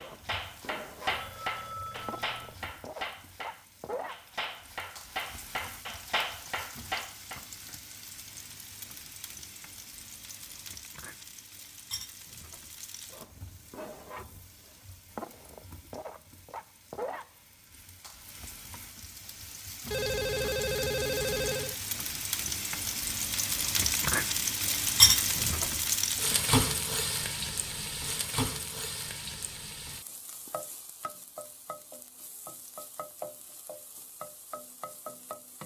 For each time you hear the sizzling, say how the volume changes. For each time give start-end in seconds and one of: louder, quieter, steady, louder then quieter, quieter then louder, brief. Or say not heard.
0.0-35.6 louder then quieter.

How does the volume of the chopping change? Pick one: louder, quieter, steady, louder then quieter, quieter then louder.
quieter then louder.